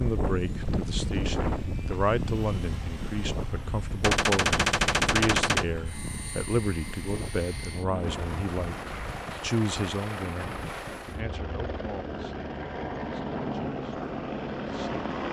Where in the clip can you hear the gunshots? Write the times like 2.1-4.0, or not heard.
4.0-5.7.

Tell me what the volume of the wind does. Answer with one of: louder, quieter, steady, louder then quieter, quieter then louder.
quieter.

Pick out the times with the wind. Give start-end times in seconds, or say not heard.
0.0-11.2.